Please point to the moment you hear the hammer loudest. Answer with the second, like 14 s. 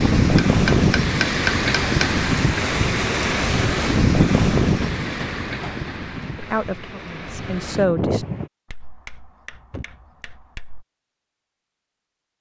1 s.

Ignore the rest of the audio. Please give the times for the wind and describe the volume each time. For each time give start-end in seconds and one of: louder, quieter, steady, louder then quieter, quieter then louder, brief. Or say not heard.
0.0-8.5 quieter.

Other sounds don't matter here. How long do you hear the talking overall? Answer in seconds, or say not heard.
2 s.